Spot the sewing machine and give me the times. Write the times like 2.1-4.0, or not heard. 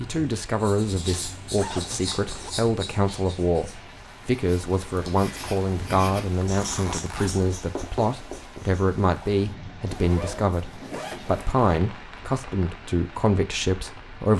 not heard.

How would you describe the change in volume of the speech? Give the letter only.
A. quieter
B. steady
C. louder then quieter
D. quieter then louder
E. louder
B.